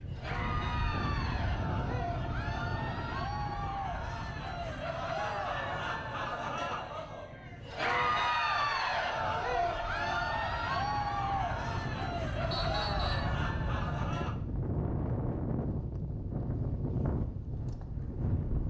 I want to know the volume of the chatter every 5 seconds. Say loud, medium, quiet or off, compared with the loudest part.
medium, loud, loud, off.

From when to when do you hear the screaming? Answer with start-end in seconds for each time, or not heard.
not heard.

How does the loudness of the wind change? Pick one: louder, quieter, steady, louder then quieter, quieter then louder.
quieter then louder.